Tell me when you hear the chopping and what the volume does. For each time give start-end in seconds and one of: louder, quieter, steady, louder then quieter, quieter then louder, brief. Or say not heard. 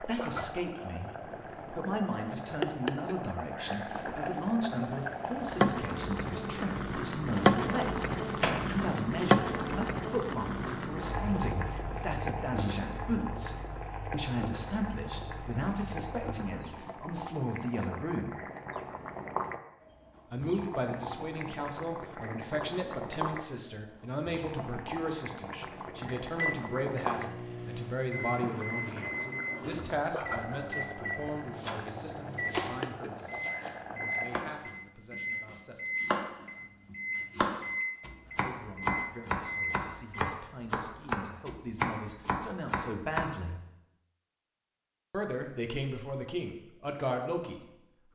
31.6-43.3 louder.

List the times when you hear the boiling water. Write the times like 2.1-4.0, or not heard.
0.0-34.5.